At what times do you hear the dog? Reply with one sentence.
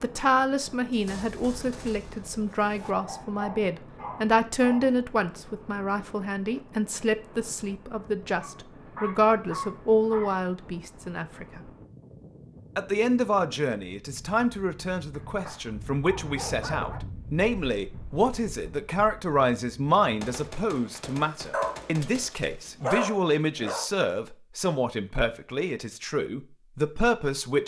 You can hear the dog from 2.7 to 5.0 s, from 8.4 to 10.4 s, from 15.1 to 17.0 s and from 21.5 to 23.9 s.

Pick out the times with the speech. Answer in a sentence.
The speech can be heard from 0.0 to 11.6 s and from 12.8 to 27.6 s.